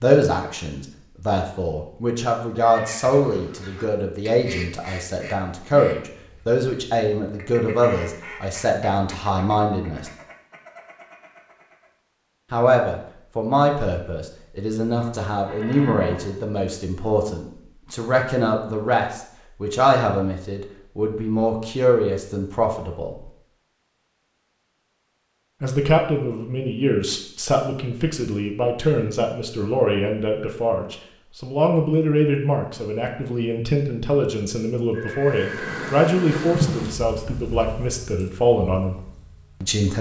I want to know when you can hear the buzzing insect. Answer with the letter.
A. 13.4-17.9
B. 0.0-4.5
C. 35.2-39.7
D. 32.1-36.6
C.